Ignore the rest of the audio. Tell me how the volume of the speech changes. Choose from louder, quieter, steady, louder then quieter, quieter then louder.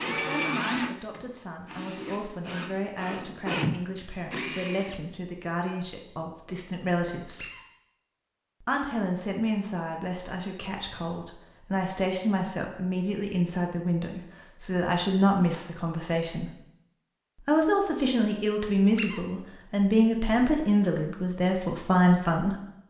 louder.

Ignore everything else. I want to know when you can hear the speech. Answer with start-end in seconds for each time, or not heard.
0.1-7.5, 8.6-16.5, 17.4-22.6.